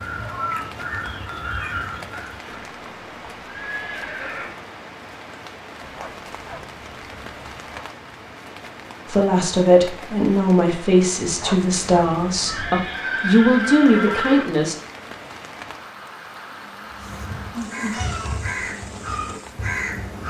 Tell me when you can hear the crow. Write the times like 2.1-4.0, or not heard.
0.0-2.5, 16.9-20.2.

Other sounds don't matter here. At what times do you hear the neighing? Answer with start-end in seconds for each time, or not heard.
2.5-4.5, 12.4-14.4.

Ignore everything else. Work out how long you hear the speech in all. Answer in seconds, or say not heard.
6 s.